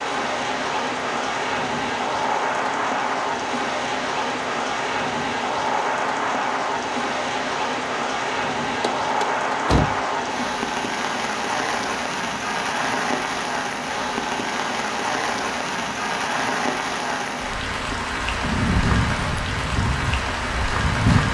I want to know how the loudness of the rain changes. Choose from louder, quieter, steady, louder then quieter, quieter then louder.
steady.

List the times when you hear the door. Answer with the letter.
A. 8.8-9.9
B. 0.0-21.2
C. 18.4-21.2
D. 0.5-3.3
A.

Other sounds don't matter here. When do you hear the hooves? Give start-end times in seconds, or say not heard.
18.4-21.2.